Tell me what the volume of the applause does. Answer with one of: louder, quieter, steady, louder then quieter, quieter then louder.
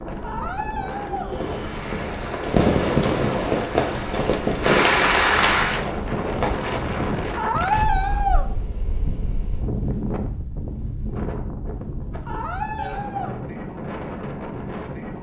louder.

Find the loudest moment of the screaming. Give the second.
8 s.